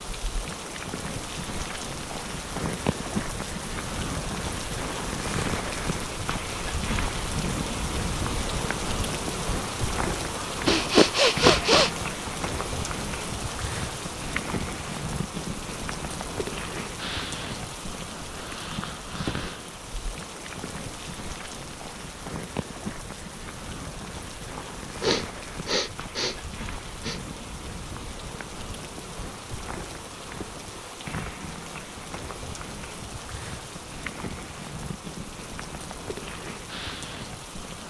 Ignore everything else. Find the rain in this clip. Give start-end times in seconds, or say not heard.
0.0-37.8.